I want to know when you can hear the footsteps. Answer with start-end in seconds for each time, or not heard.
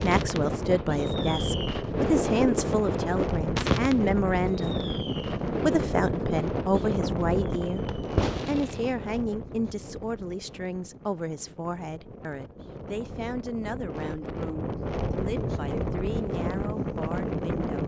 not heard.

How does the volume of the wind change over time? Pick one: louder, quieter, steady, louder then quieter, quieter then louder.
quieter then louder.